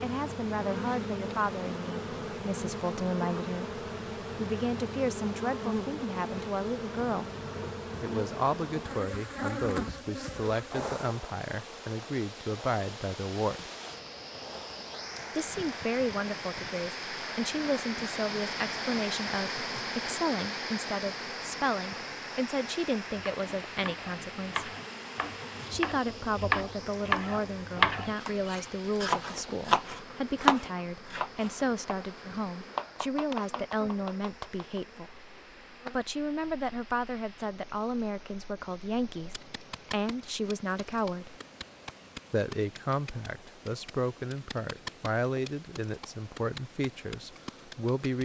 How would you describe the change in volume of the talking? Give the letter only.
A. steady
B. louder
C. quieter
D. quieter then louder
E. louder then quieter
A.